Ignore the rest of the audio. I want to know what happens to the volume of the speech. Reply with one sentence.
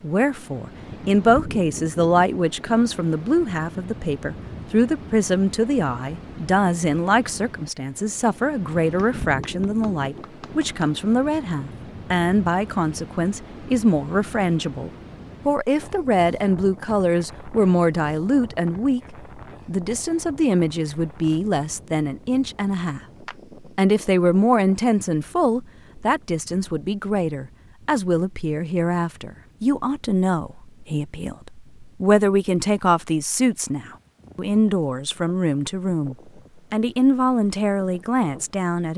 The volume of the speech stays about the same.